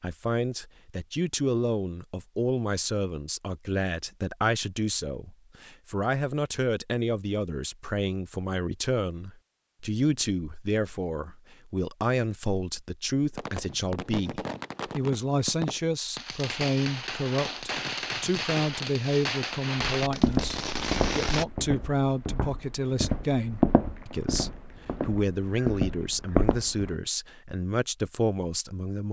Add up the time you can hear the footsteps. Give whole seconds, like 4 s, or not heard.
7 s.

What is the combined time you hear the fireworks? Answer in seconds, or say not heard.
8 s.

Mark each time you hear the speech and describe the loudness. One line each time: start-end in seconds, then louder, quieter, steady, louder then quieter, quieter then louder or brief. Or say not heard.
0.0-29.0 steady.